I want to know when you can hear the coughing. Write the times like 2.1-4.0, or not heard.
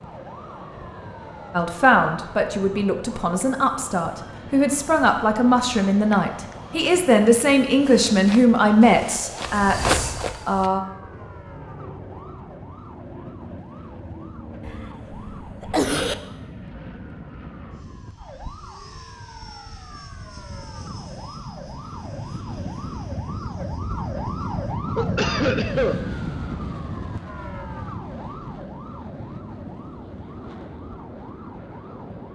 6.1-6.7, 14.7-16.1, 24.9-26.0.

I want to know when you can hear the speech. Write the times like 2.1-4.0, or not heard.
1.5-10.8.